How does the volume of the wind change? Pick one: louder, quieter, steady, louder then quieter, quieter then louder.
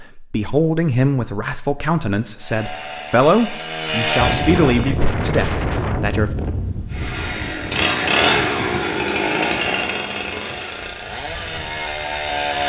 quieter.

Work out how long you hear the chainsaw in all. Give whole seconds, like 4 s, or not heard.
8 s.